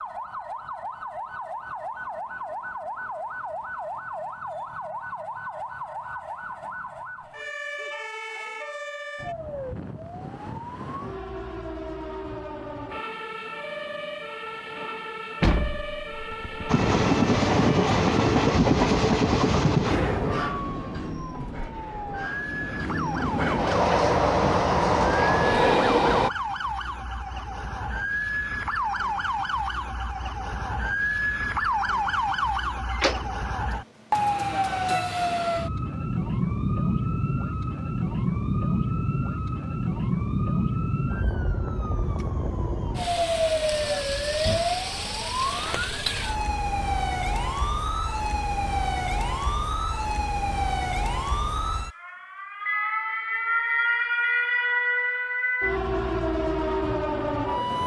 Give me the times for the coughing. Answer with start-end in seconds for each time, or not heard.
not heard.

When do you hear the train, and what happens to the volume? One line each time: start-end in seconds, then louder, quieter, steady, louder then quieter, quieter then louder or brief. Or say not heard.
16.6-26.3 quieter then louder.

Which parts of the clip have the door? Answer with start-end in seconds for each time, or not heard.
15.4-16.8, 32.9-33.5, 45.5-46.3.